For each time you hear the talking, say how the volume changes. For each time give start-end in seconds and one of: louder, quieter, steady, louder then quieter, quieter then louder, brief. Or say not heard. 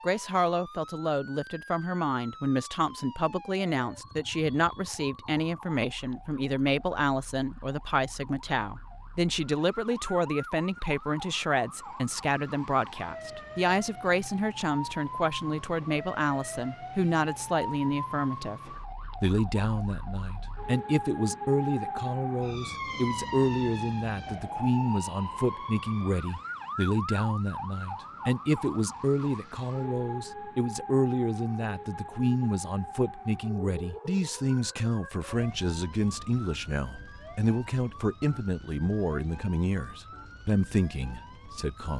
0.0-41.9 steady.